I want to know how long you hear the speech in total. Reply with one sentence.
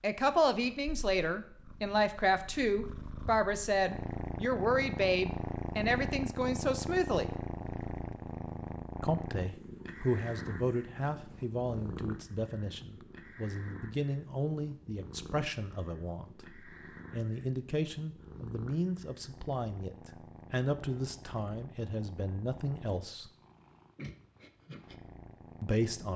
The speech can be heard for 22 seconds in total.